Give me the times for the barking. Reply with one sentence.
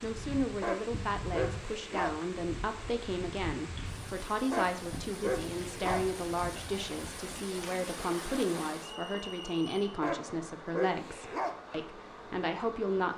You can hear the barking from 0.6 to 2.1 s, from 4.5 to 6.0 s and from 10.0 to 11.6 s.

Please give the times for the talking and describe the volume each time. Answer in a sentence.
You can hear the talking from 0.0 to 13.1 s, at a steady volume.